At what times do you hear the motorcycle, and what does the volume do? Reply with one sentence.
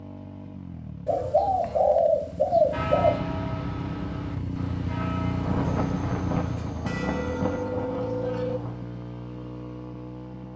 You can hear the motorcycle from 0.0 to 10.5 s, getting louder then quieter.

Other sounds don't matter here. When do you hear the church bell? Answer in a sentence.
The church bell can be heard from 2.7 to 8.6 s.